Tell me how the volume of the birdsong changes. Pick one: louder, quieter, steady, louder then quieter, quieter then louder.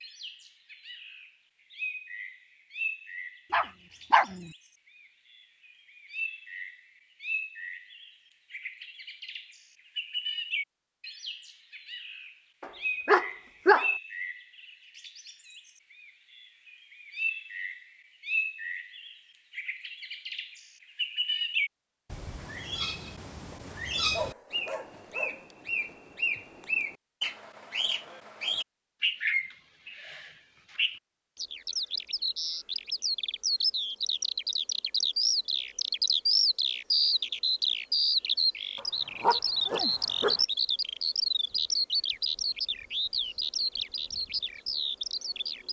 louder.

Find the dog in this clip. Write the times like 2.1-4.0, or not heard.
3.5-4.5, 12.6-13.9, 23.5-25.4, 38.8-40.4.